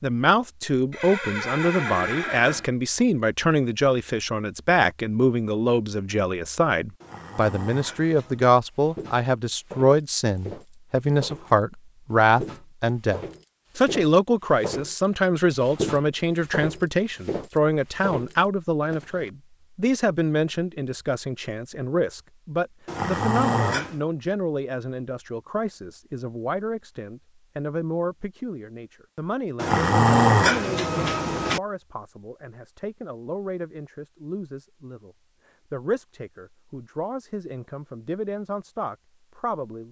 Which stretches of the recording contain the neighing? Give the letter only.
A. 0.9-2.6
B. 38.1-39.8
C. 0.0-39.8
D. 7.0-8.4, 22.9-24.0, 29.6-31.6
A.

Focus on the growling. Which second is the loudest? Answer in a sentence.
The loudest moment of the growling is at 30 seconds.